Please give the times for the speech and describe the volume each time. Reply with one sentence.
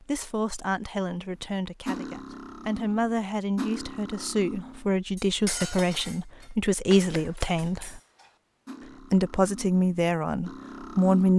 The speech can be heard from 0.1 to 8.0 s, getting louder; and briefly from 9.1 to 11.3 s.